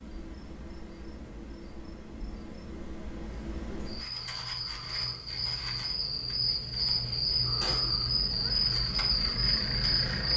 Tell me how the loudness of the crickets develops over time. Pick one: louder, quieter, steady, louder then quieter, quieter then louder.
louder.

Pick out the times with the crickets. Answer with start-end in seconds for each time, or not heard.
0.0-10.3.